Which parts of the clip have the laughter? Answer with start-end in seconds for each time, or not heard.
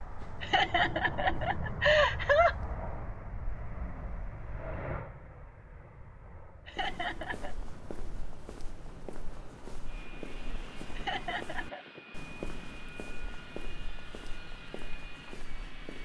0.4-2.5, 6.7-7.5, 10.9-11.8.